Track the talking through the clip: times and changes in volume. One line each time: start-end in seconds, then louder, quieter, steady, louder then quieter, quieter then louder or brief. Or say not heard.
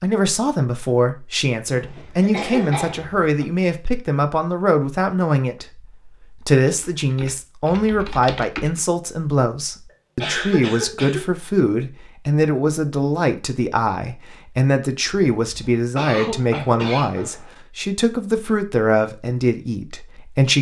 0.0-20.5 steady.